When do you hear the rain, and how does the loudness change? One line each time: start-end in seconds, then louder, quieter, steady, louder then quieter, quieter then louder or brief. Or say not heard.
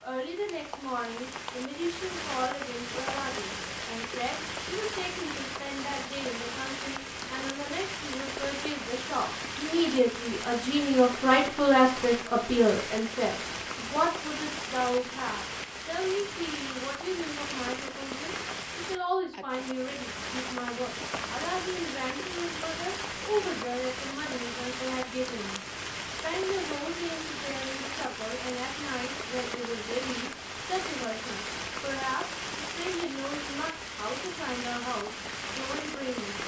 0.0-36.4 steady.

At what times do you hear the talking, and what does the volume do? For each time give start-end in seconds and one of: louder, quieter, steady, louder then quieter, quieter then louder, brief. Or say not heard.
0.0-36.4 louder then quieter.